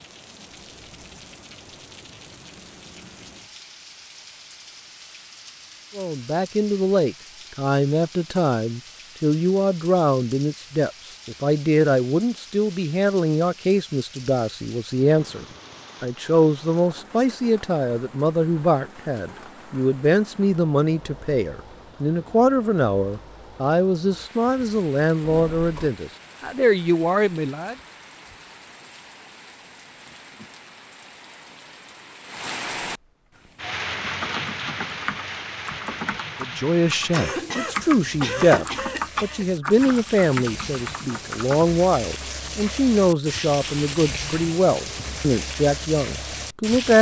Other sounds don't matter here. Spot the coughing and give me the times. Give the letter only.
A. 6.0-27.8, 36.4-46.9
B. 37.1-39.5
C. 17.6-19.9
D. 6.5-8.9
B.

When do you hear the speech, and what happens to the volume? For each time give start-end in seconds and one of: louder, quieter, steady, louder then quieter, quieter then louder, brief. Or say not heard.
6.0-27.8 steady
36.4-46.9 steady.